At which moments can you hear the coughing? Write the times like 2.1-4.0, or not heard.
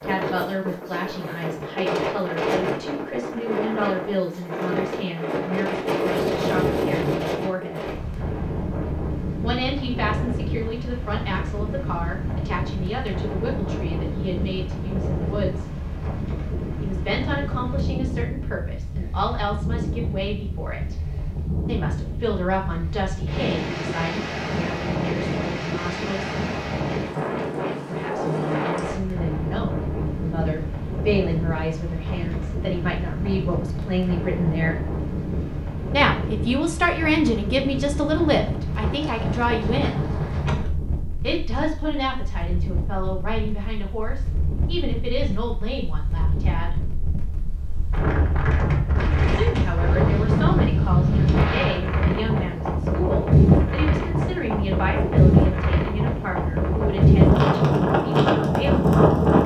not heard.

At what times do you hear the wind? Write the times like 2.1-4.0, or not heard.
0.0-59.4.